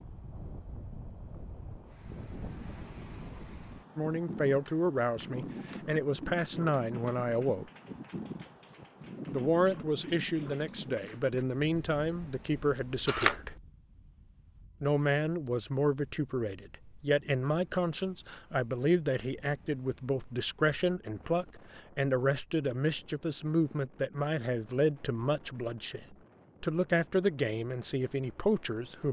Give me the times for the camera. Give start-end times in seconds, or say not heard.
11.8-13.6.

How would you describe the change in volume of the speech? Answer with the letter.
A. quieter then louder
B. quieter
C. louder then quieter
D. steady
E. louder
D.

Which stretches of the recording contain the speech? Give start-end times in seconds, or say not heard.
4.0-7.7, 9.3-13.5, 14.8-29.0.